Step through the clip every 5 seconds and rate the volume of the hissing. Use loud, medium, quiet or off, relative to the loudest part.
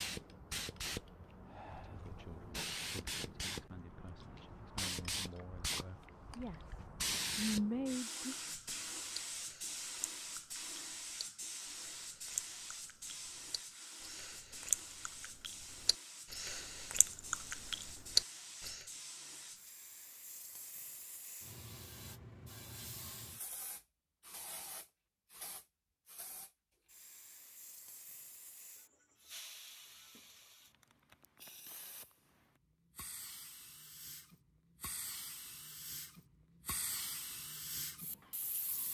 loud, loud, medium, medium, medium, quiet, quiet, medium.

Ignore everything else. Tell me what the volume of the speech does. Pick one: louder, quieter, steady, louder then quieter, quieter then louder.
louder.